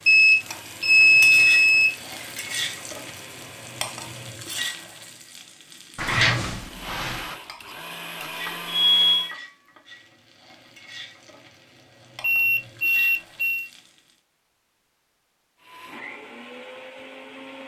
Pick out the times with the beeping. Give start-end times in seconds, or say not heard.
0.1-2.4, 8.2-9.2, 12.2-13.7.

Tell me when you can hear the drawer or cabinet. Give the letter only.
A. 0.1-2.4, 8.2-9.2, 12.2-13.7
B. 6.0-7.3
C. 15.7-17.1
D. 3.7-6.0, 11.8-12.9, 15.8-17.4
B.